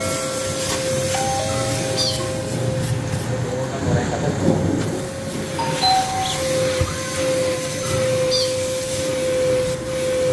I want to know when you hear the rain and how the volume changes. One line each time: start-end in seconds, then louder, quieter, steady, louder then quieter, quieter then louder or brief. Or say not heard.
0.0-10.2 louder then quieter.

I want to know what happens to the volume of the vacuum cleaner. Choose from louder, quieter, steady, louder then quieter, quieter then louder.
quieter then louder.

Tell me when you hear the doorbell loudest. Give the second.
6 s.